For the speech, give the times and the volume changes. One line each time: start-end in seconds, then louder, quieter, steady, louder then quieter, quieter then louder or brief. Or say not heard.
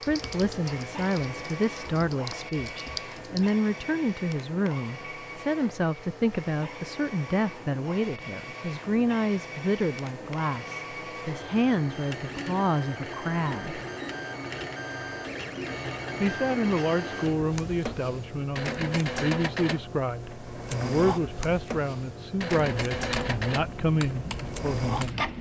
0.1-13.8 steady
16.2-25.2 steady.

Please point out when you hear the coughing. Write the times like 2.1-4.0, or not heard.
not heard.